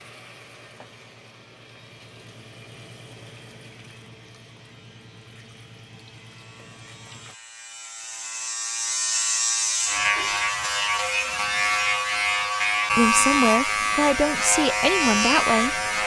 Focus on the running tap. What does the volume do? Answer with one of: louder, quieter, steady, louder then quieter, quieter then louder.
steady.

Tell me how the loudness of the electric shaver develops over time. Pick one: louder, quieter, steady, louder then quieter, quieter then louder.
louder.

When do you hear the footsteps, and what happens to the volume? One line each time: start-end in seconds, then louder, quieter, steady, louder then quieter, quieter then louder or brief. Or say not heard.
not heard.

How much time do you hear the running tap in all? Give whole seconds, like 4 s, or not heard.
7 s.